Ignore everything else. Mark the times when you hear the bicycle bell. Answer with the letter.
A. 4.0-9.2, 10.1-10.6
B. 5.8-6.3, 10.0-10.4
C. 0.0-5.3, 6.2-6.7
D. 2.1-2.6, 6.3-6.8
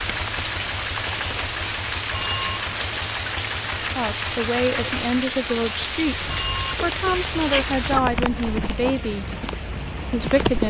D.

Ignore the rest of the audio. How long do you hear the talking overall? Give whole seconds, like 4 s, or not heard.
6 s.